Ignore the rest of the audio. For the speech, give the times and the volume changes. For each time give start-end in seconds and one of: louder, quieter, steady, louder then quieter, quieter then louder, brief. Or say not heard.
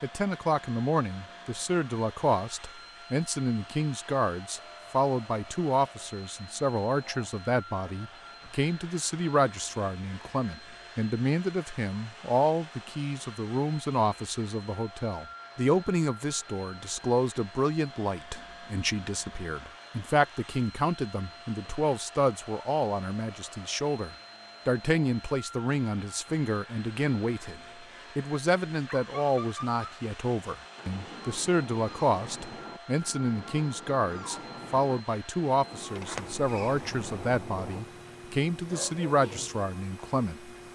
0.0-40.5 steady.